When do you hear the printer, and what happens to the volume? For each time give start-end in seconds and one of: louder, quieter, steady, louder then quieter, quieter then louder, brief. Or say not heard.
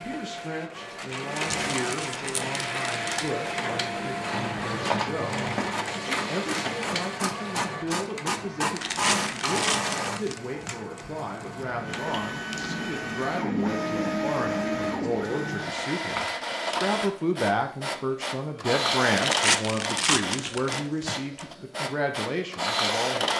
0.0-23.3 steady.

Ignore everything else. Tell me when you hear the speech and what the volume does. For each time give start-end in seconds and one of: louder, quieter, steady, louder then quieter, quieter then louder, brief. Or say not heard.
0.0-23.3 louder.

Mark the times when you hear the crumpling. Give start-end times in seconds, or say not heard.
1.4-3.3, 8.8-11.0, 19.1-21.4.